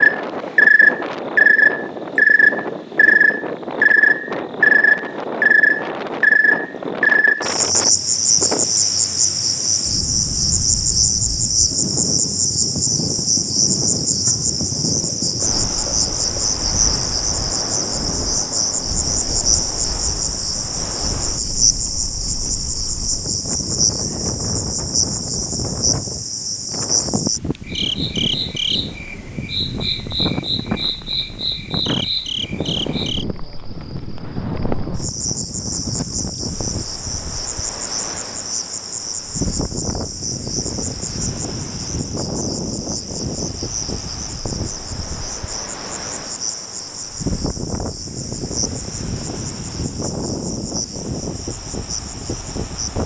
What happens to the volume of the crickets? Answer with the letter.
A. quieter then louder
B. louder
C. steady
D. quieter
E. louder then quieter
D.